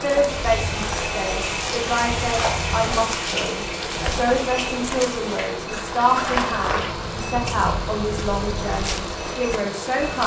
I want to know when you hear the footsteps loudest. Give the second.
6 s.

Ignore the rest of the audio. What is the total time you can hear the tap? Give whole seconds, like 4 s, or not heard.
10 s.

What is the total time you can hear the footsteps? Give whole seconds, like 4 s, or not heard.
10 s.